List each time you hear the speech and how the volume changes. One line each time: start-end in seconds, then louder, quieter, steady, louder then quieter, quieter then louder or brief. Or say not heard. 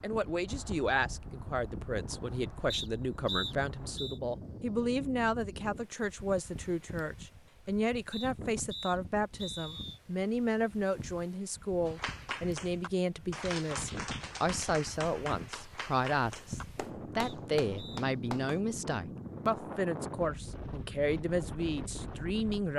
0.0-22.7 steady.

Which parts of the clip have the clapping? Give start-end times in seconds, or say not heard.
11.8-18.6.